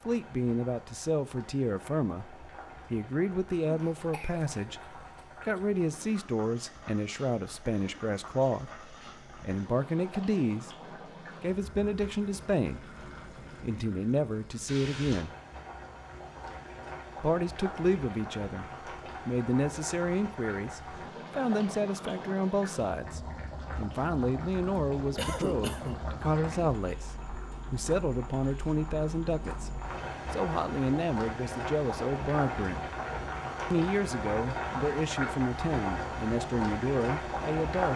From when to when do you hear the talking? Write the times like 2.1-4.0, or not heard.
0.1-10.8, 11.4-12.8, 13.6-15.3, 17.2-27.1, 27.7-32.9, 33.7-37.9.